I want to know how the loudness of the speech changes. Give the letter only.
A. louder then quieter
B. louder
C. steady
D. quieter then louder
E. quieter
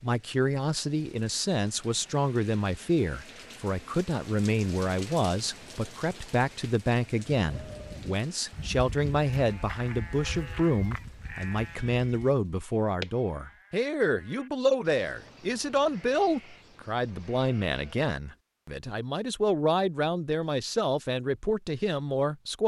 C.